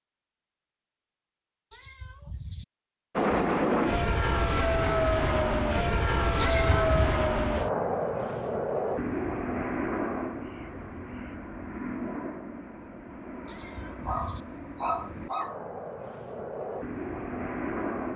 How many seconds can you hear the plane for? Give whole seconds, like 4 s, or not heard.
15 s.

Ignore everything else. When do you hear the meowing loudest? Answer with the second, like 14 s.
7 s.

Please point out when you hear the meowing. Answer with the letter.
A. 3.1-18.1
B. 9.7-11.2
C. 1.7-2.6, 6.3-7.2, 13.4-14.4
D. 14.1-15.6
C.